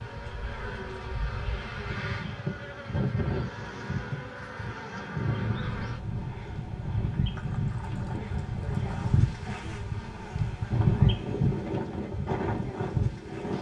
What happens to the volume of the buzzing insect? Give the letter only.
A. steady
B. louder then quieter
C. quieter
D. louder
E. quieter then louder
D.